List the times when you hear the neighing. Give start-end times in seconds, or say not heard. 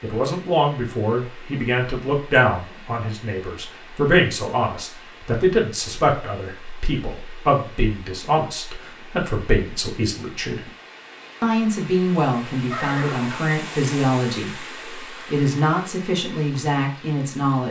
12.7-13.6.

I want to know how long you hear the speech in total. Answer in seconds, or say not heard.
17 s.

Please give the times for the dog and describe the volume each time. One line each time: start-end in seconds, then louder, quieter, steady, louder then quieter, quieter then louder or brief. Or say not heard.
not heard.